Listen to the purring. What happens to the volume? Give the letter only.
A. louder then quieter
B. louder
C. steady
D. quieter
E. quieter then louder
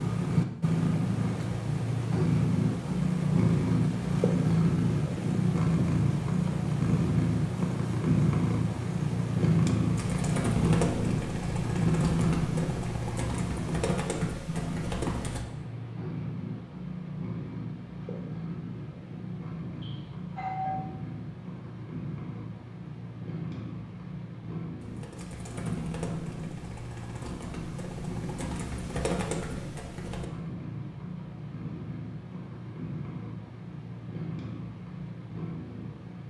D.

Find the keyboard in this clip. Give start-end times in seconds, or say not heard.
9.9-15.4, 24.8-30.2.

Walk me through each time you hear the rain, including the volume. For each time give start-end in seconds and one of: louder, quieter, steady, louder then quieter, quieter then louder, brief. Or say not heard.
not heard.